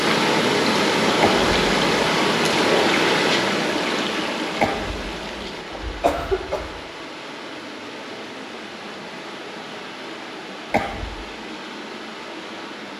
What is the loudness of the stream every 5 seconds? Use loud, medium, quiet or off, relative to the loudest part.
loud, quiet, quiet.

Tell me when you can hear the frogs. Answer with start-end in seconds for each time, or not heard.
not heard.